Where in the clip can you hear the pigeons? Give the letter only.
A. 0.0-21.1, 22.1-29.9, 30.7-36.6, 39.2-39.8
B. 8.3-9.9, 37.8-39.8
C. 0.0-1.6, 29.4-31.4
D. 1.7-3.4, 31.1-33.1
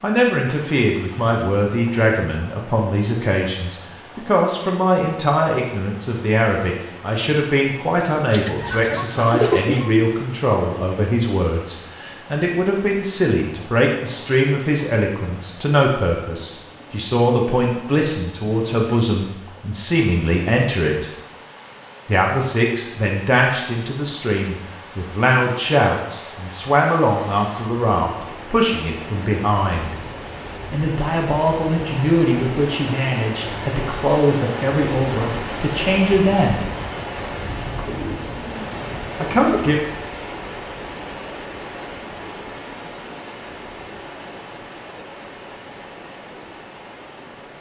B.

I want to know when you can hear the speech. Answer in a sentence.
You can hear the speech from 0.0 to 21.1 s, from 22.1 to 29.9 s, from 30.7 to 36.6 s and from 39.2 to 39.8 s.